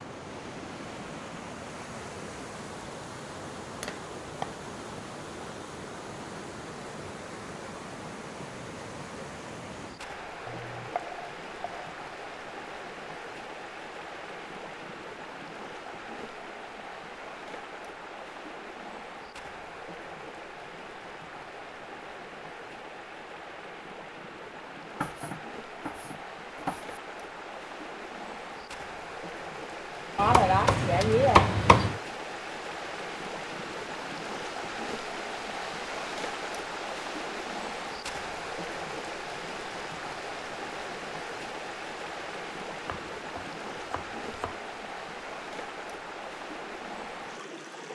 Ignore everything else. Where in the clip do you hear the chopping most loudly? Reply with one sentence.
The loudest moment of the chopping is at 31 seconds.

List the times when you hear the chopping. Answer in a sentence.
The chopping can be heard from 3.8 to 5.0 s, from 10.4 to 11.9 s, from 25.0 to 26.9 s, from 30.1 to 32.0 s and from 42.9 to 44.6 s.